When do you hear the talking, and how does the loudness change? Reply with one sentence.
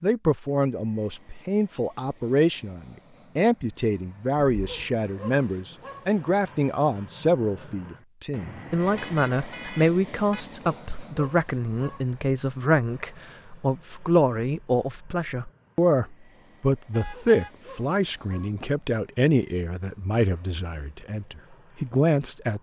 You can hear the talking from 0.0 to 22.5 s, at a steady volume.